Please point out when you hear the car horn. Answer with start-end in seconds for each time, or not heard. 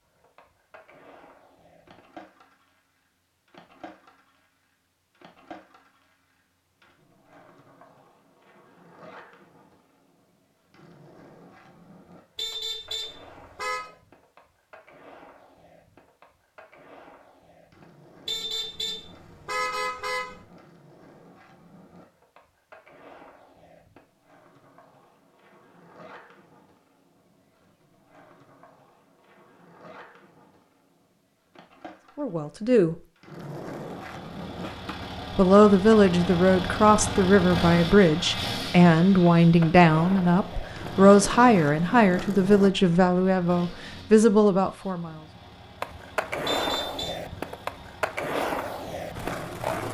12.3-13.9, 18.2-20.4, 46.5-47.1.